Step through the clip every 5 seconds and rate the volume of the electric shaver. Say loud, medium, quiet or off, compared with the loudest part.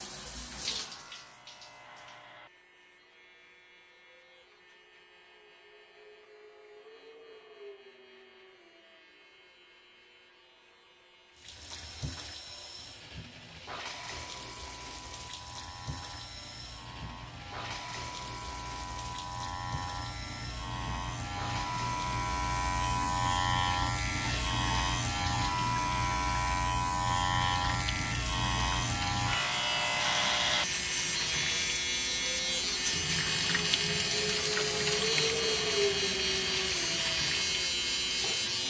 quiet, quiet, quiet, quiet, loud, loud, loud, loud.